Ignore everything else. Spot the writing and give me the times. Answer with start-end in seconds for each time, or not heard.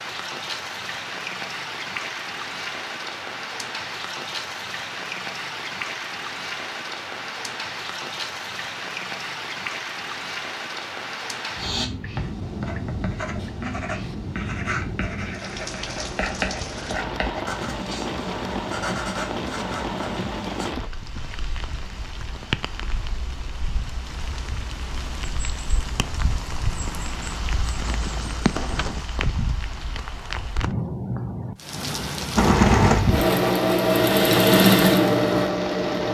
11.6-20.8.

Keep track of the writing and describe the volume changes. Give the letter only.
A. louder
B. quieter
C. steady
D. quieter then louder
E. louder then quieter
C.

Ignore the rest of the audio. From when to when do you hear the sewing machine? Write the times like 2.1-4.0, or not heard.
32.4-36.0.